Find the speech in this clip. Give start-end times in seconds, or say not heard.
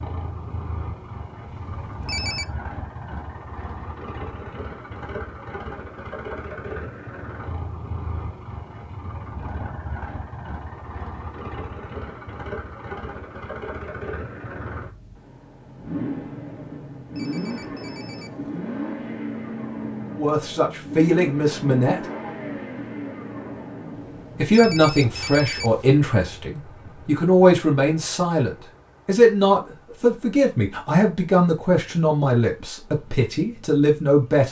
20.1-22.1, 24.4-34.4.